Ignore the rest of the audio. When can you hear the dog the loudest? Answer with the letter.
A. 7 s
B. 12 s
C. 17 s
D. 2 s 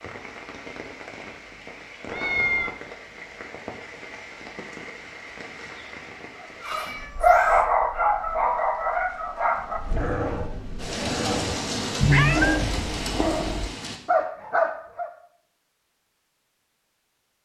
A.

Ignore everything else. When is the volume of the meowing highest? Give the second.
12 s.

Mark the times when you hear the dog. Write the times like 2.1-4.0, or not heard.
6.7-15.1.